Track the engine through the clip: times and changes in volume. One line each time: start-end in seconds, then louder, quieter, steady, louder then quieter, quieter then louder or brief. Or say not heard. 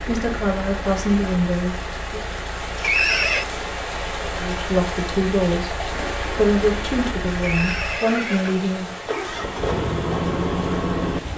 0.0-11.3 louder.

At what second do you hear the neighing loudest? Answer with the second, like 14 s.
3 s.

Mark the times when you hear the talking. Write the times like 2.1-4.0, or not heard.
0.0-2.2, 4.3-8.9.